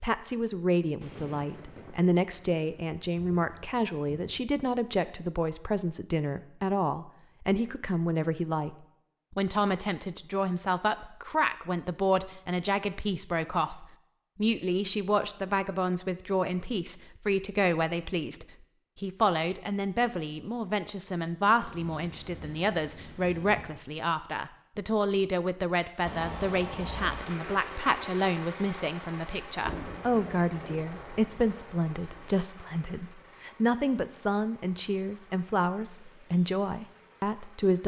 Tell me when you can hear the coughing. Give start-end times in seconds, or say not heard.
not heard.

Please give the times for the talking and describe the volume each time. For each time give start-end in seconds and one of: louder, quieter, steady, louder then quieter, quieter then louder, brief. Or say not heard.
0.0-37.8 steady.